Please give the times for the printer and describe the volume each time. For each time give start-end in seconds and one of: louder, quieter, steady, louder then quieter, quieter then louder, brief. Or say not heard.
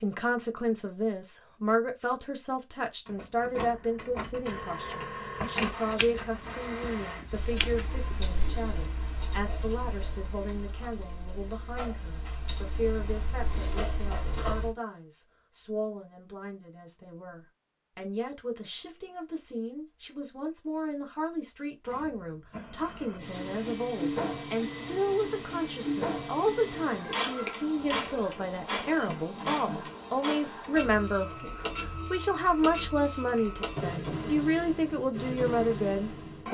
3.0-7.2 louder then quieter
21.9-36.4 steady.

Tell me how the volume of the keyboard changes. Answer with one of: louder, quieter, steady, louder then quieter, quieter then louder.
quieter then louder.